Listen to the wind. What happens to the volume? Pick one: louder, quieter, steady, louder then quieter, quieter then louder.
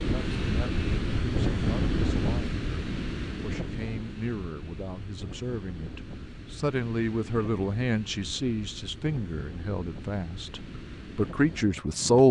quieter.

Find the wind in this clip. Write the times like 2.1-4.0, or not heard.
0.0-12.2.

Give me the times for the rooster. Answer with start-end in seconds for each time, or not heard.
not heard.